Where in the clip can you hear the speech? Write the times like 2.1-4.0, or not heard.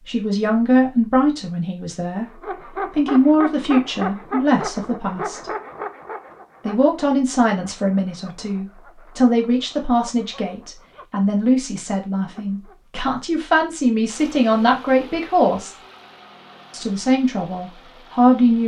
0.1-2.3, 2.9-5.5, 6.7-15.8, 16.7-18.6.